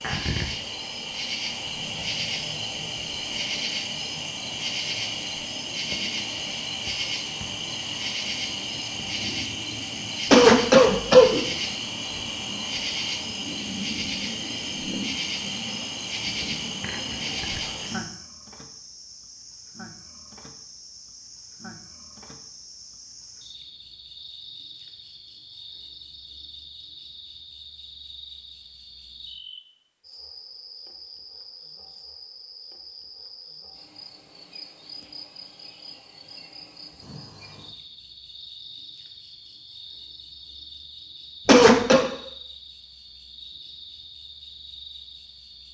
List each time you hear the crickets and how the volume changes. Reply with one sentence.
You can hear the crickets from 0.0 to 45.6 s, getting quieter.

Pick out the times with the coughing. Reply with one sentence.
The coughing can be heard from 10.3 to 11.4 s and from 41.5 to 42.0 s.